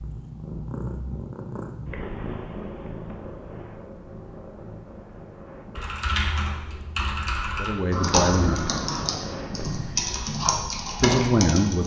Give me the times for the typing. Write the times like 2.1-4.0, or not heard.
5.8-11.8.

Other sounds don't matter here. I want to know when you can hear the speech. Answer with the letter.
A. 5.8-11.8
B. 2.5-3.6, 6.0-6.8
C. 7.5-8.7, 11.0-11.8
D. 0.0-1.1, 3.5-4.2
C.